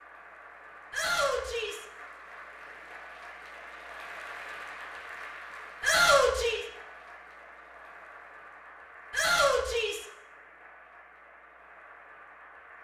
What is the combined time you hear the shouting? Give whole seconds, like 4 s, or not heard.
3 s.